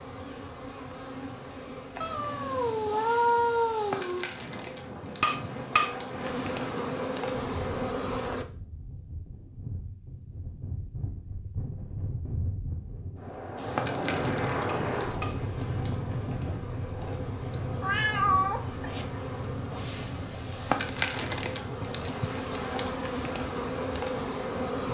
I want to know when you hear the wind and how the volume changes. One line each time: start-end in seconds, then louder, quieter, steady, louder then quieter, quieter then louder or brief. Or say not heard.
4.0-24.8 louder then quieter.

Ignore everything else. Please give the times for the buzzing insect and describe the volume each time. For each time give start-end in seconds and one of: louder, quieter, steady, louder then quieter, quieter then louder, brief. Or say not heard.
0.0-8.4 louder
13.6-24.8 louder.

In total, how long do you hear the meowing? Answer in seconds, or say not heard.
4 s.